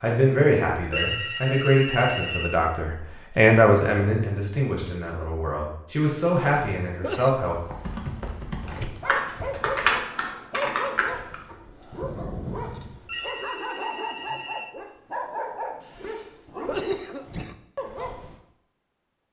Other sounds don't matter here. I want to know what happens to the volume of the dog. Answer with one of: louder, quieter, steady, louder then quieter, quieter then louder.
steady.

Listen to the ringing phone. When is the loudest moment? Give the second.
1 s.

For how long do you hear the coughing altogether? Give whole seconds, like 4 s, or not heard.
3 s.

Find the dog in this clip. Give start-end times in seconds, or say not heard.
8.6-18.4.